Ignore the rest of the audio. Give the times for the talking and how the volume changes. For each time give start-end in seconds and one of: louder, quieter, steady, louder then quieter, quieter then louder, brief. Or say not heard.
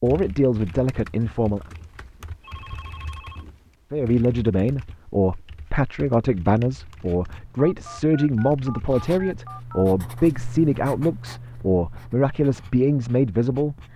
0.0-1.6 brief
3.9-13.8 steady.